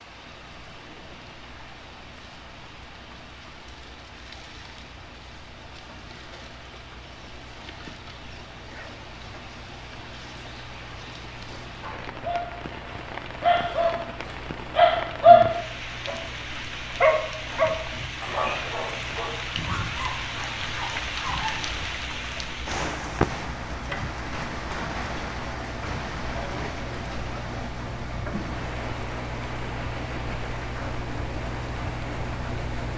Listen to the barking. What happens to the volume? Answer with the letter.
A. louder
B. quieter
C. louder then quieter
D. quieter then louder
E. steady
C.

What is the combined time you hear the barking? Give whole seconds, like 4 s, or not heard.
10 s.